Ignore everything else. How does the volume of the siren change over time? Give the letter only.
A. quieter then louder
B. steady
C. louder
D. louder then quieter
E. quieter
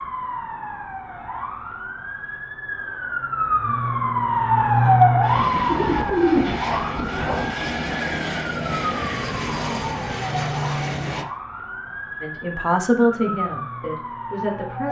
D.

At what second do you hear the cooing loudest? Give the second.
6 s.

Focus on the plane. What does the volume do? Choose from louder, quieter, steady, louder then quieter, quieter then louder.
steady.